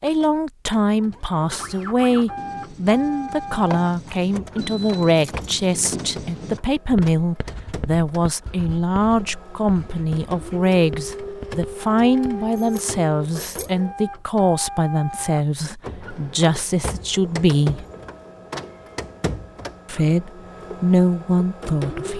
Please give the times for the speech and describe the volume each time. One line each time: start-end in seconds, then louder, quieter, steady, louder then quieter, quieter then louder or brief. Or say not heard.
0.0-17.9 steady
19.9-22.1 brief.